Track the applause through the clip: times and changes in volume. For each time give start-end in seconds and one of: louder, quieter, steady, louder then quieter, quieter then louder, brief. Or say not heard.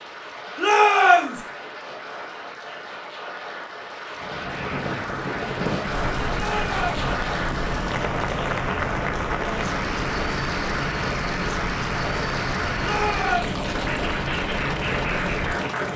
0.0-15.9 louder.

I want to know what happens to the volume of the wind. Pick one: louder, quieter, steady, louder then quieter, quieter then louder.
steady.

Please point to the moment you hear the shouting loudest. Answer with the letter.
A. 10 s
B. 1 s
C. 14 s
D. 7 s
B.